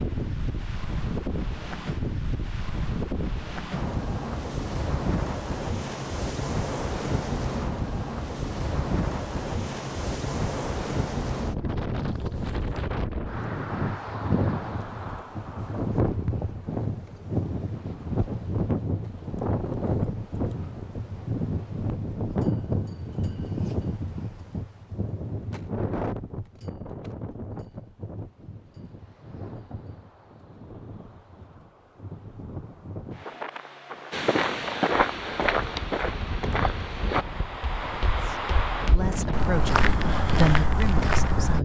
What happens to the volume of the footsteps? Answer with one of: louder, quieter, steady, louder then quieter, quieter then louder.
quieter then louder.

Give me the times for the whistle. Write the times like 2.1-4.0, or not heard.
not heard.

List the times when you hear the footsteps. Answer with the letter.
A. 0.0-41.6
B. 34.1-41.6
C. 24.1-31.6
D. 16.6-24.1
B.